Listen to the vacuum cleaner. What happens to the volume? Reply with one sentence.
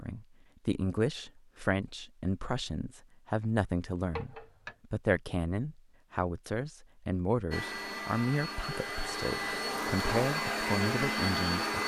The loudness of the vacuum cleaner goes up.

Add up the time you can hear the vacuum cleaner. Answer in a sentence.
You can hear the vacuum cleaner for 4 seconds altogether.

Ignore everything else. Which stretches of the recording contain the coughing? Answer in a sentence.
You can hear the coughing from 4.2 to 4.8 s.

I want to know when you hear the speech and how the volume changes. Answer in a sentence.
You can hear the speech from 0.0 to 11.8 s, at a steady volume.